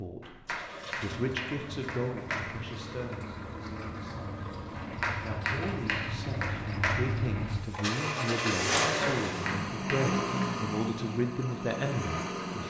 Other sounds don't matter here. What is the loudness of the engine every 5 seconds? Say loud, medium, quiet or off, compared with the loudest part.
medium, loud, loud.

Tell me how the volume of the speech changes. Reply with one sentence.
The loudness of the speech goes down, then up.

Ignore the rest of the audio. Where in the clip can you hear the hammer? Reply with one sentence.
The hammer can be heard from 0.2 to 2.5 s, from 4.8 to 7.0 s and from 9.0 to 10.5 s.